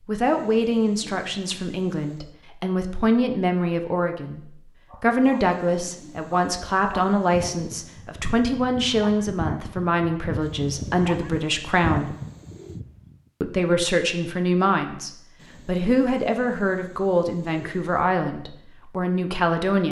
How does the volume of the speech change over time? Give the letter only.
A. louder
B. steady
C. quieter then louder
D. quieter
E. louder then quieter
B.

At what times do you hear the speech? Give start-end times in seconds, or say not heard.
0.1-12.2, 13.4-19.8.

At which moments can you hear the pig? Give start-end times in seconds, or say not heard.
not heard.